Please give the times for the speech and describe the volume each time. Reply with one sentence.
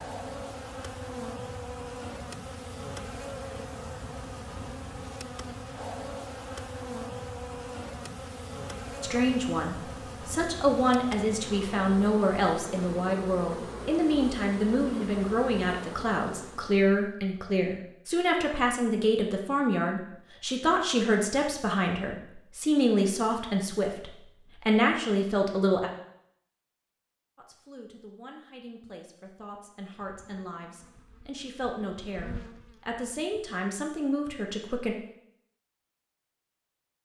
You can hear the speech from 9.0 to 25.9 s, at a steady volume; and from 27.4 to 35.0 s, getting louder.